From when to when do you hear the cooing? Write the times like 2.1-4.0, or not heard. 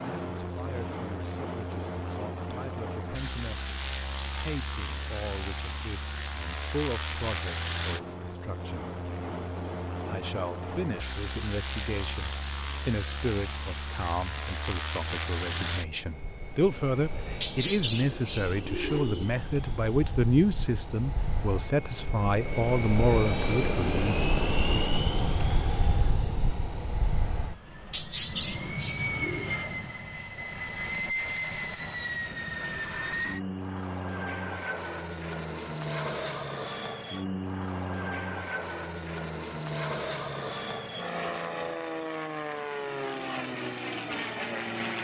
17.4-19.3, 27.9-29.5.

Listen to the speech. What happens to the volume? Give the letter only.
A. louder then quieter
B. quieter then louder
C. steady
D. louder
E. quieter
D.